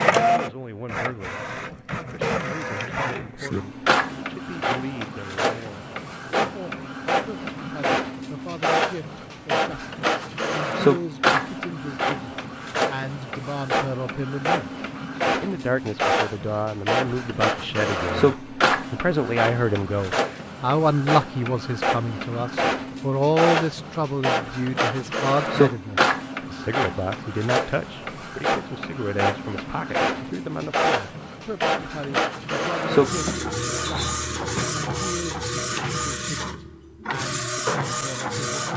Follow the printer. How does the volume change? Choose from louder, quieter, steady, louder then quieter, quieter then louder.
steady.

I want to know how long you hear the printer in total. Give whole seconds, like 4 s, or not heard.
39 s.